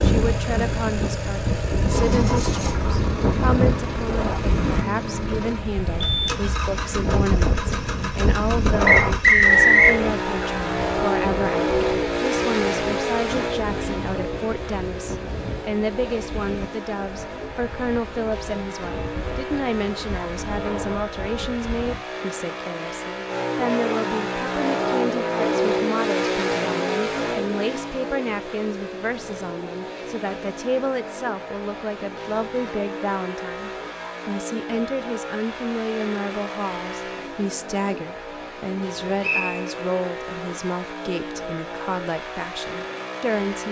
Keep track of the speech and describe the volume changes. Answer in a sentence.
The volume of the speech stays about the same.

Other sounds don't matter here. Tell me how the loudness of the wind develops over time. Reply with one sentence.
The loudness of the wind goes down.